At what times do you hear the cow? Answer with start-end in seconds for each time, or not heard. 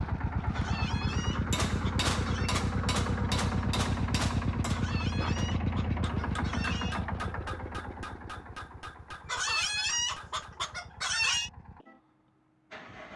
not heard.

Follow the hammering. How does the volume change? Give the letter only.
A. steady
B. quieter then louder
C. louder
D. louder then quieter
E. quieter
E.